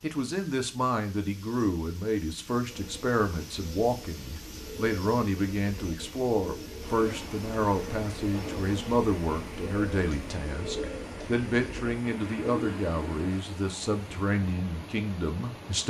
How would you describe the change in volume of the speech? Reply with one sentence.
The loudness of the speech stays about the same.